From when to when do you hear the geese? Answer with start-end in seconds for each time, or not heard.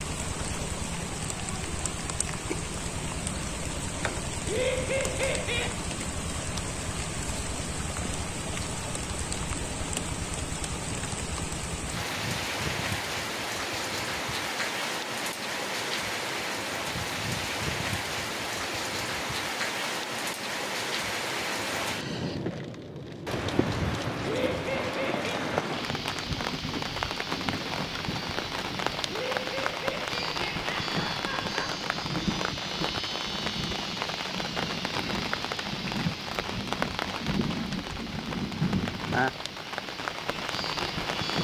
not heard.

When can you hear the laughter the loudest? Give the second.
5 s.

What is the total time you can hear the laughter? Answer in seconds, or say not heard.
5 s.